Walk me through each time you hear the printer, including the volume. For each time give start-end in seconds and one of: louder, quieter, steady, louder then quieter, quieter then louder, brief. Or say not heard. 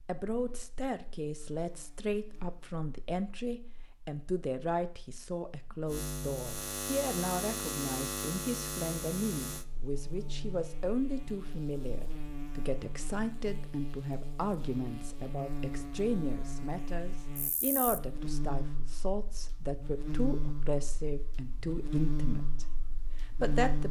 not heard.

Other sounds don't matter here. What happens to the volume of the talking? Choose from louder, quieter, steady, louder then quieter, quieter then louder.
steady.